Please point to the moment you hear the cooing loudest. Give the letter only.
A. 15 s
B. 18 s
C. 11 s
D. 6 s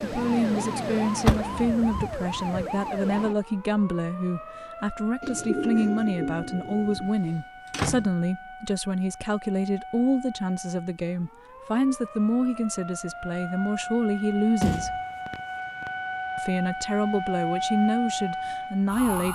D.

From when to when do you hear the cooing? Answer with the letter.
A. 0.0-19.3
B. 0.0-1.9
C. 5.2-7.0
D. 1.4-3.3
C.